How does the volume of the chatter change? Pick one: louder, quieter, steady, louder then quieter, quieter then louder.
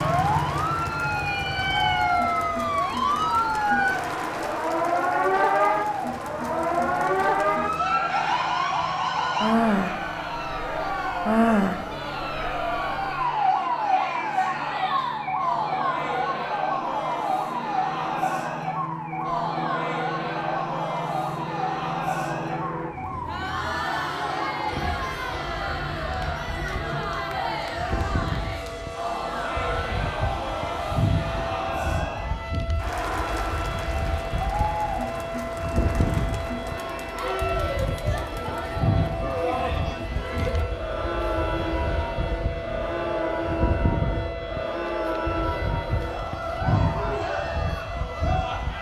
steady.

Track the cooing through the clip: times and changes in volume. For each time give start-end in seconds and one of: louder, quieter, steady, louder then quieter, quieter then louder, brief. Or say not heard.
not heard.